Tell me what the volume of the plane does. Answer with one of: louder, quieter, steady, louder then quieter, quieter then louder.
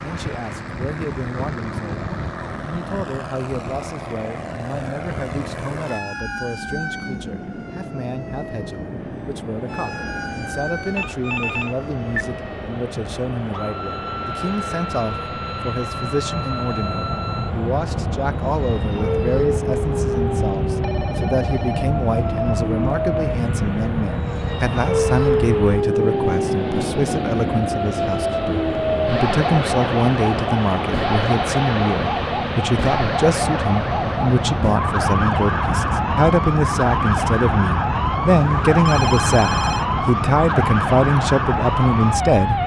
louder.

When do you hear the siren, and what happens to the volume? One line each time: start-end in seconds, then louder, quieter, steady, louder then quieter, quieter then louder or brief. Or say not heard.
0.0-42.6 louder.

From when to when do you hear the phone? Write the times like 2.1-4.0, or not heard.
10.9-12.2, 20.8-21.9, 38.4-39.9.